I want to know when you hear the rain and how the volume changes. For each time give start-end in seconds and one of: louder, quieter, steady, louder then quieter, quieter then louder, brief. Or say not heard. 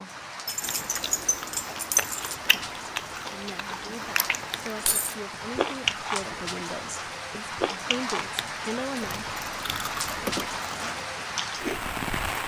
0.0-12.4 louder.